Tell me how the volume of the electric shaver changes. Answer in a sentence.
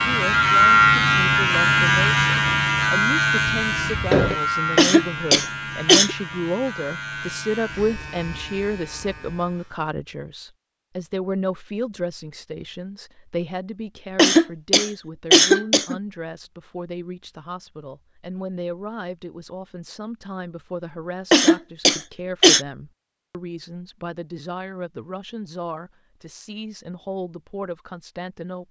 The volume of the electric shaver goes down.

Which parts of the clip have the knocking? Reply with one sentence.
The knocking can be heard from 3.5 to 4.4 s.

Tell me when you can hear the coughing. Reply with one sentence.
The coughing can be heard from 4.8 to 6.2 s, from 14.2 to 16.0 s and from 21.3 to 22.6 s.